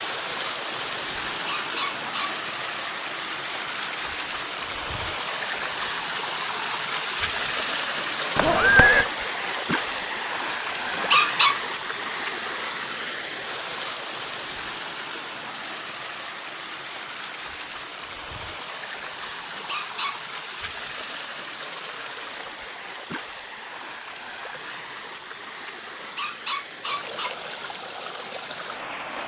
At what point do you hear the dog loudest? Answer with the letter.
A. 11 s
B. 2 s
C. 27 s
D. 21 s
A.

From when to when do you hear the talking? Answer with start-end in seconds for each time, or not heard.
not heard.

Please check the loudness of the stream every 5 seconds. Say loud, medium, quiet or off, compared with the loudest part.
loud, loud, loud, medium, medium, medium.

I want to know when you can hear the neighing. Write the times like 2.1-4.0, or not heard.
8.3-9.1.